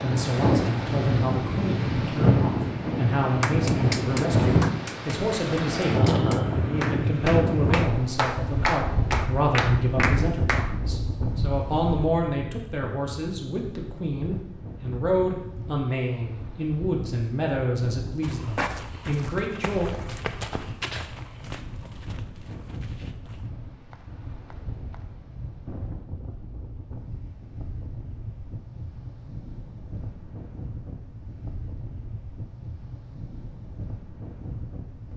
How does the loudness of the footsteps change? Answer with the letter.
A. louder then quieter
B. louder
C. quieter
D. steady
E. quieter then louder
C.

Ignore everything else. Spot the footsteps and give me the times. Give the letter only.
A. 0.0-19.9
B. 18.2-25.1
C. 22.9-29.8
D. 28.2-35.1
B.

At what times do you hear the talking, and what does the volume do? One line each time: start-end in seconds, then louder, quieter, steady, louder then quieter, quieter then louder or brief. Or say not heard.
0.0-19.9 steady.